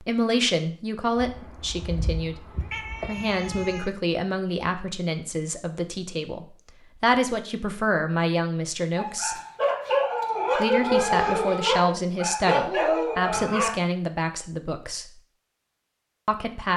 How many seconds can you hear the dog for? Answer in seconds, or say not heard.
5 s.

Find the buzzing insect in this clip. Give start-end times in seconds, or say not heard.
not heard.